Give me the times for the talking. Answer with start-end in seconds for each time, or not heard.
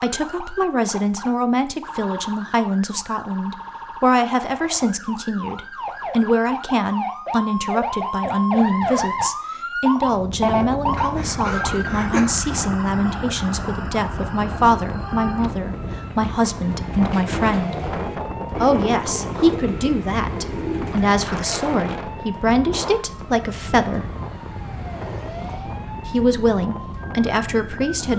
0.0-17.8, 18.6-24.1, 26.1-28.1.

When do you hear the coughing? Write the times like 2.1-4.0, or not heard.
10.9-12.3.